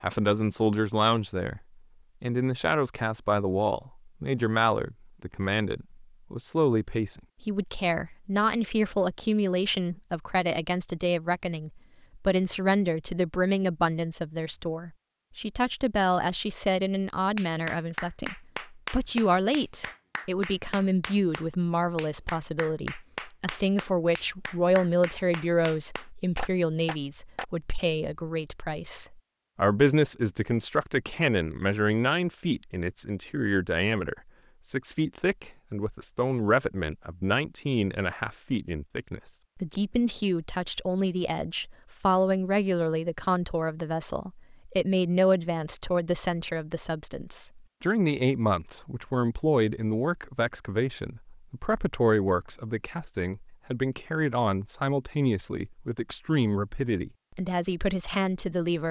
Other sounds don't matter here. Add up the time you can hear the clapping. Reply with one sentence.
You can hear the clapping for 10 seconds altogether.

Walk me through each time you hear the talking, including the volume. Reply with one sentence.
You can hear the talking briefly from 0.0 to 1.6 s; and from 2.2 to 58.8 s, at a steady volume.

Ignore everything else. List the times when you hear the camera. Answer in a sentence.
You can't hear the camera here.